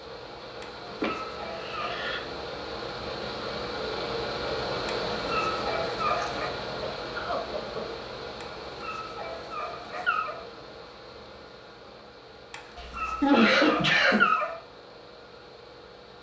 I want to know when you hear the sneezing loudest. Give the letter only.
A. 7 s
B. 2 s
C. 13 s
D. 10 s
C.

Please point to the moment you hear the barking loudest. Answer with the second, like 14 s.
14 s.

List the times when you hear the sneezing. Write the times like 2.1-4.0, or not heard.
1.0-2.2, 6.1-7.8, 12.8-14.2.